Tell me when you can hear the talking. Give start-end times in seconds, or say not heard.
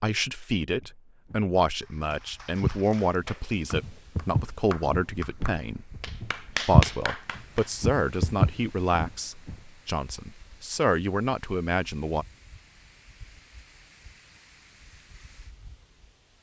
0.0-12.2.